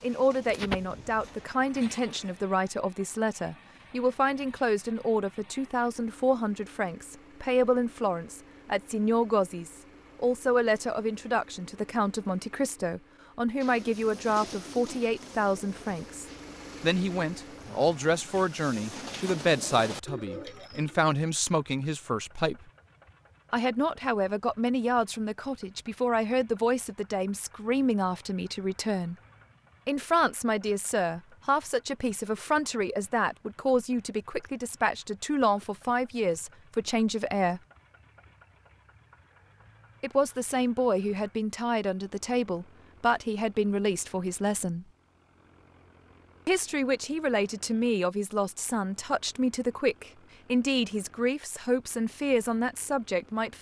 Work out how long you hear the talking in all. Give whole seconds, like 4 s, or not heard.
48 s.